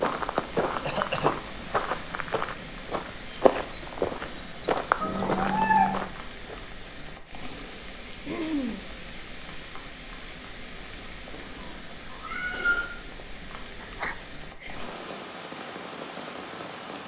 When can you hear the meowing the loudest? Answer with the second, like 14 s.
6 s.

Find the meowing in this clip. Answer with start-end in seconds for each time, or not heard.
5.0-6.0, 11.6-12.8.